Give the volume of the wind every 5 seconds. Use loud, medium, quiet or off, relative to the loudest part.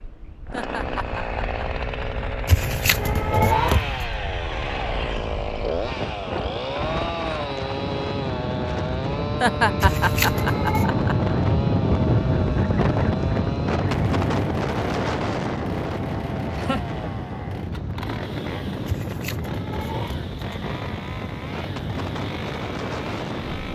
quiet, medium, loud, medium, medium.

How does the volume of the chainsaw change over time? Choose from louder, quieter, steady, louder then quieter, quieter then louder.
quieter.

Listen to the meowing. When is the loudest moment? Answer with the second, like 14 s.
4 s.